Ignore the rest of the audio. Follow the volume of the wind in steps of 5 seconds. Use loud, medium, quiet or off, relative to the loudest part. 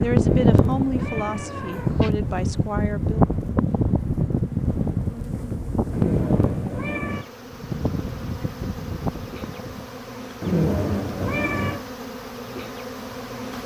loud, medium, off.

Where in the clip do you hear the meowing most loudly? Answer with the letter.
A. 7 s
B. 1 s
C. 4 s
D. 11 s
D.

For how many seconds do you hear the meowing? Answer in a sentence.
The meowing can be heard for 5 seconds in total.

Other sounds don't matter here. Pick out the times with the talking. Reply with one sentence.
The talking can be heard from 0.0 to 3.2 s.